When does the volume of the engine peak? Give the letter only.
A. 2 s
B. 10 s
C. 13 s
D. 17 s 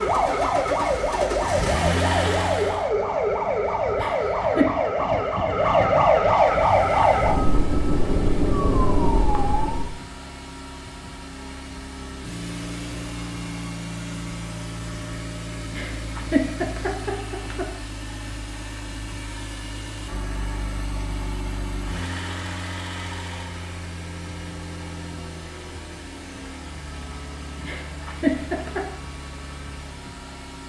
A.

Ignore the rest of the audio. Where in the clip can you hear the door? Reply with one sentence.
You can't hear the door here.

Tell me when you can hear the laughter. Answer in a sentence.
The laughter can be heard from 4.0 to 4.7 s, from 15.7 to 17.6 s and from 27.6 to 28.9 s.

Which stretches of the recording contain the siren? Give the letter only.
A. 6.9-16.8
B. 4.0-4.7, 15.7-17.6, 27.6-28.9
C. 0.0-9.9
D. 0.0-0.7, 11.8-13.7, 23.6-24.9
C.